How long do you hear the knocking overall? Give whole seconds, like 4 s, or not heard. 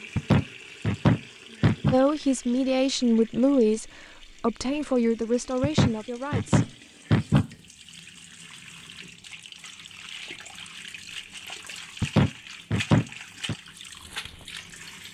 5 s.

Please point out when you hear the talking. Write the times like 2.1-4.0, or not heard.
1.9-6.7.